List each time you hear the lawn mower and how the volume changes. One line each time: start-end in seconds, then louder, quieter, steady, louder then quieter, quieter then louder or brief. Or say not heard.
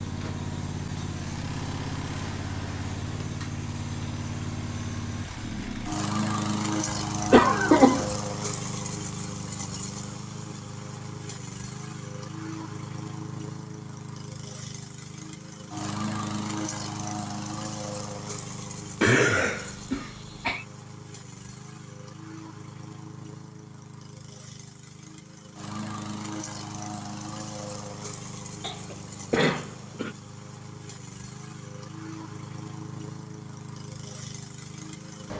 0.0-35.3 quieter.